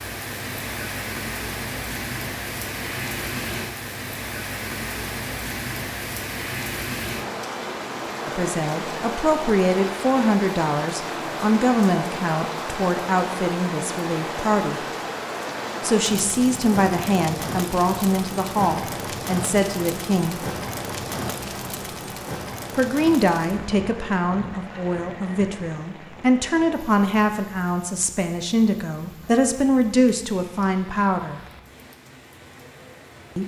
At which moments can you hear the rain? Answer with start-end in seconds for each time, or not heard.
0.0-33.4.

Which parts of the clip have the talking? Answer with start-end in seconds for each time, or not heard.
8.2-14.8, 15.8-20.4, 22.8-31.4.